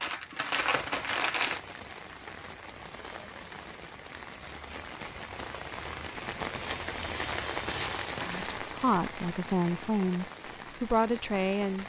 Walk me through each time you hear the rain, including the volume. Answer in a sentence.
You can hear the rain from 0.0 to 11.8 s, getting louder then quieter.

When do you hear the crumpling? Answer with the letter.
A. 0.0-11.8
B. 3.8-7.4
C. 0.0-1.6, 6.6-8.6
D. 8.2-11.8
C.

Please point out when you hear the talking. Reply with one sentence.
The talking can be heard from 8.2 to 11.8 s.